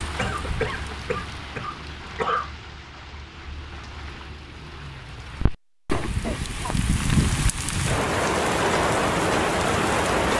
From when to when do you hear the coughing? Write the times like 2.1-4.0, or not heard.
0.1-2.5, 5.9-6.8.